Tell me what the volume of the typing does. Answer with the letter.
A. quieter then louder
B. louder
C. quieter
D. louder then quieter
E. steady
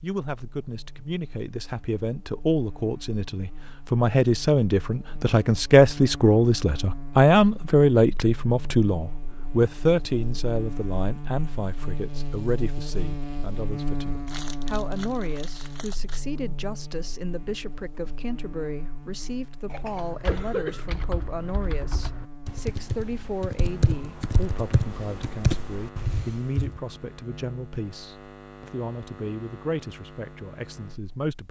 B.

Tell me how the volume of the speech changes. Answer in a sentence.
The volume of the speech goes down.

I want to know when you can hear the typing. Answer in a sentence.
You can hear the typing from 19.9 to 26.8 s.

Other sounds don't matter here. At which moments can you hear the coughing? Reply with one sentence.
You can hear the coughing from 19.7 to 20.9 s.